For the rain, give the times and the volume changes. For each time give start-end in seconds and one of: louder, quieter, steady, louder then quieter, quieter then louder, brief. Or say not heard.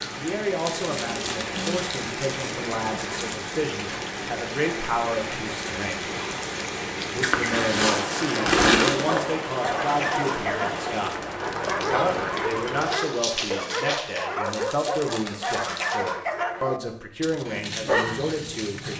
0.0-14.3 steady.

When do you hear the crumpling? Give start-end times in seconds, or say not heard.
0.6-2.5, 7.2-9.2, 14.4-16.0.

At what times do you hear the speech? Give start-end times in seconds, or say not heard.
0.1-6.1, 7.1-11.2, 11.9-18.9.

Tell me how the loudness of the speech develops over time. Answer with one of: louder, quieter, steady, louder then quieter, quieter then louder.
steady.